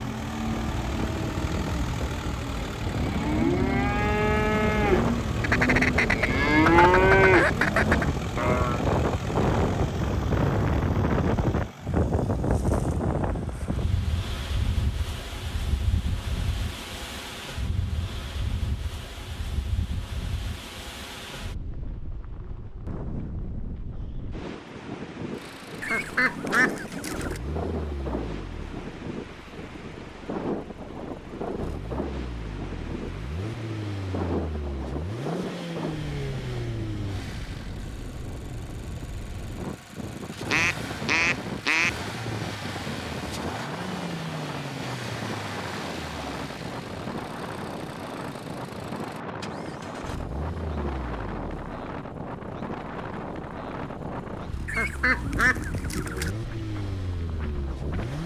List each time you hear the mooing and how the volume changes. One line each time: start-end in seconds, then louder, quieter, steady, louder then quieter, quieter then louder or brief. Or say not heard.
0.0-8.8 louder.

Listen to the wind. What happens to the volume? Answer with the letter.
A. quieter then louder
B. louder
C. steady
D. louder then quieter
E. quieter
E.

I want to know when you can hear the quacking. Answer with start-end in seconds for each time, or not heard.
5.4-8.1, 25.8-27.4, 40.5-42.0, 54.6-56.4.